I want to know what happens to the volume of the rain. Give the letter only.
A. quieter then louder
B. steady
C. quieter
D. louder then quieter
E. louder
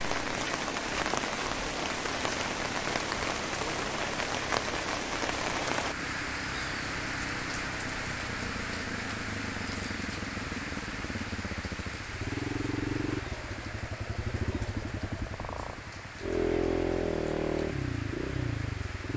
C.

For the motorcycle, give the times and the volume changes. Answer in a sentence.
You can hear the motorcycle from 0.0 to 19.1 s, getting louder.